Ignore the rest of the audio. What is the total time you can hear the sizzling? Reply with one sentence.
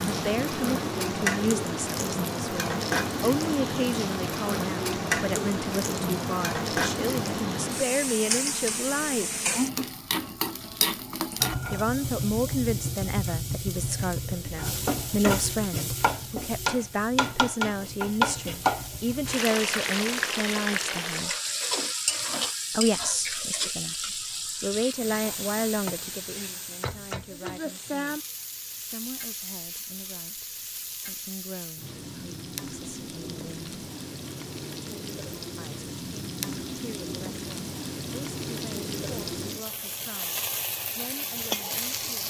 You can hear the sizzling for 42 seconds altogether.